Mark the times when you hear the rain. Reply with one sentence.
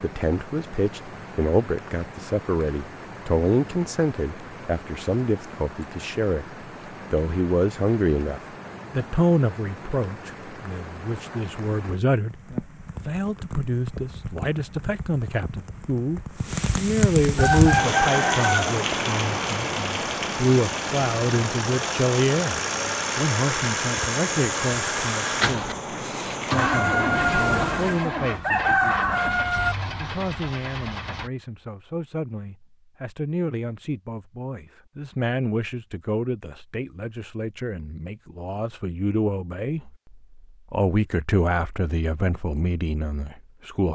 The rain can be heard from 0.0 to 28.1 s.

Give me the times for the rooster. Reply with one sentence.
The rooster can be heard from 17.4 to 18.8 s and from 26.6 to 29.8 s.